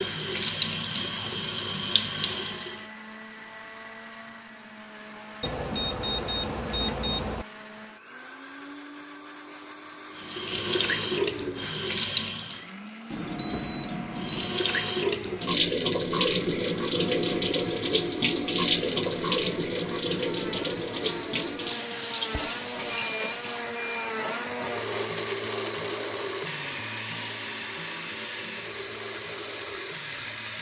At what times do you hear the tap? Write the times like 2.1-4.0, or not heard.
0.0-2.9, 10.2-12.7, 14.1-30.5.